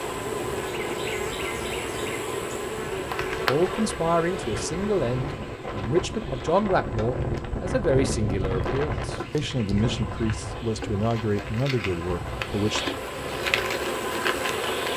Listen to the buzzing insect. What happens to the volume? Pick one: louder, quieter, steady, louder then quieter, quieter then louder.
quieter then louder.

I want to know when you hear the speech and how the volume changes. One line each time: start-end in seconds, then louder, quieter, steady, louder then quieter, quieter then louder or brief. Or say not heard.
3.5-12.9 steady.